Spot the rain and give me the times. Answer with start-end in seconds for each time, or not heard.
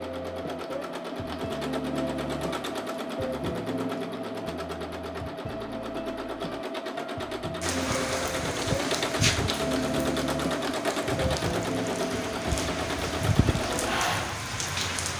7.6-15.1.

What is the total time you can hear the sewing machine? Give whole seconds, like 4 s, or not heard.
15 s.